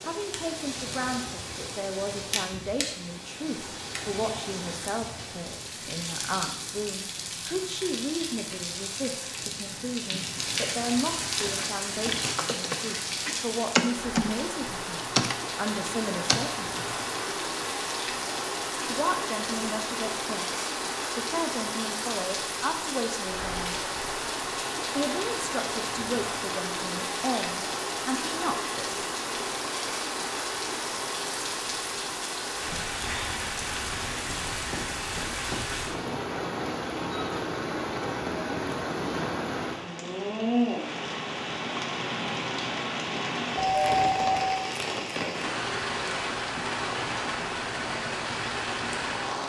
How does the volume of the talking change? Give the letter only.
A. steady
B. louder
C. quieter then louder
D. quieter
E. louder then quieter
A.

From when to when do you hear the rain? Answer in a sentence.
The rain can be heard from 0.0 to 49.4 s.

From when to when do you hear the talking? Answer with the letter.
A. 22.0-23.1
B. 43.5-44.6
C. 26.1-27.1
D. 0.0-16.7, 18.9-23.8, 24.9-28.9
D.